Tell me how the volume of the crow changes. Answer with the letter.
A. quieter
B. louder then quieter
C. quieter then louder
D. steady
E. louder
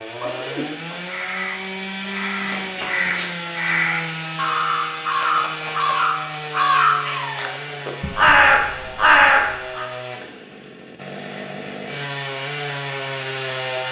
E.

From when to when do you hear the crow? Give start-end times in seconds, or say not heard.
0.2-9.8.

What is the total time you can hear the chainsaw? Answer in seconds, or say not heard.
14 s.